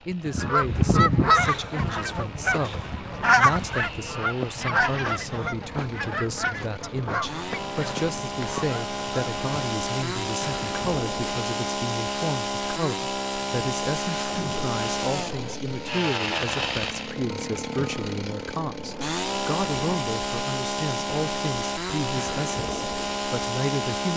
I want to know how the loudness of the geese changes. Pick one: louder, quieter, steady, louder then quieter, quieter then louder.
quieter.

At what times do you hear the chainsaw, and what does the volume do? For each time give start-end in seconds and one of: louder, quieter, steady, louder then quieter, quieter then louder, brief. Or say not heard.
0.0-24.1 louder.